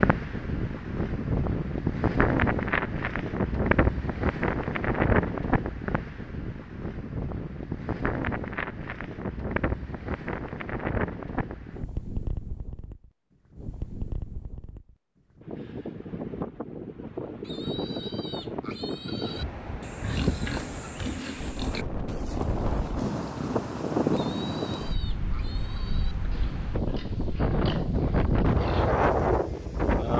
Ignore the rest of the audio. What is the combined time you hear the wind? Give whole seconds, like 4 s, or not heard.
30 s.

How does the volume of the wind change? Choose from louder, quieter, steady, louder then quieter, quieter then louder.
quieter then louder.